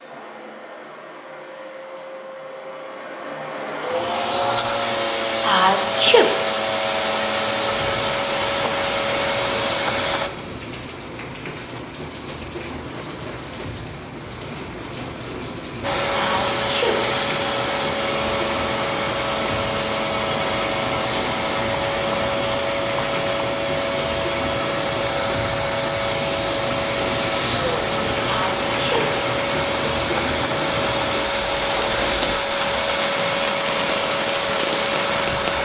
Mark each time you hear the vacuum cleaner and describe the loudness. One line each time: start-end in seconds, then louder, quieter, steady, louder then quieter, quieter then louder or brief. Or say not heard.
0.0-10.3 louder
15.8-35.6 steady.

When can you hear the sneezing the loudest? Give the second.
6 s.